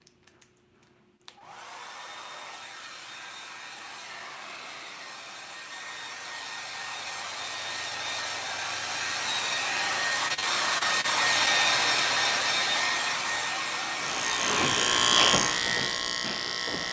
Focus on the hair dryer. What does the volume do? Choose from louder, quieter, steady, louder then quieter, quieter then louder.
louder.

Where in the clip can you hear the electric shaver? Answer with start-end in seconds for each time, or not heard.
13.9-16.8.